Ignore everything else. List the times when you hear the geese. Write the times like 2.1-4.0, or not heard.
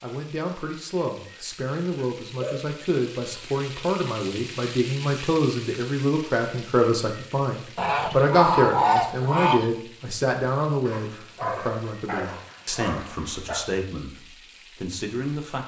7.8-9.7.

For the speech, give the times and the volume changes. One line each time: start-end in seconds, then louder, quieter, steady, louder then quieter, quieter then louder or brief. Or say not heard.
0.0-15.6 louder then quieter.